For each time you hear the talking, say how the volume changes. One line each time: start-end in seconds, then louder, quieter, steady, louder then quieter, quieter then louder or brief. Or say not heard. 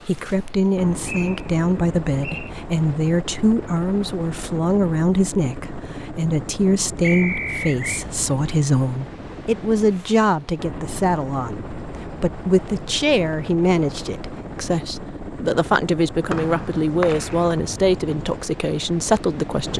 0.1-19.7 steady.